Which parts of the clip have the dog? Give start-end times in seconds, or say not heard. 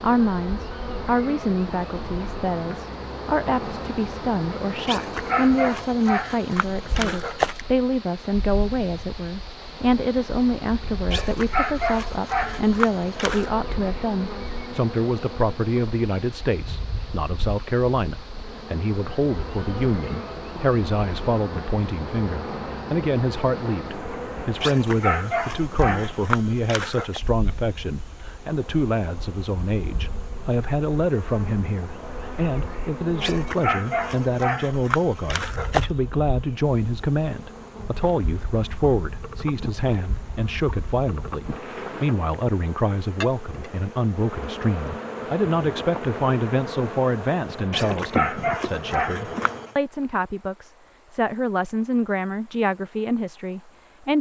4.8-7.6, 11.1-13.5, 24.6-27.2, 33.2-35.9, 47.7-49.6.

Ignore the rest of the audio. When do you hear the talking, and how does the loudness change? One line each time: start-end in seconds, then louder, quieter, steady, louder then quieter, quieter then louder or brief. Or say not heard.
0.0-54.1 steady.